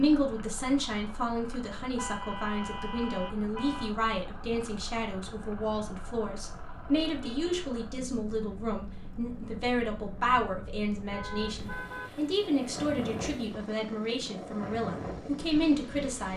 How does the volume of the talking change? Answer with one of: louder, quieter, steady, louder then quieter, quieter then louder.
steady.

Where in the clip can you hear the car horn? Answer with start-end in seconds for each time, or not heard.
1.9-4.0, 7.0-7.5, 11.1-12.1.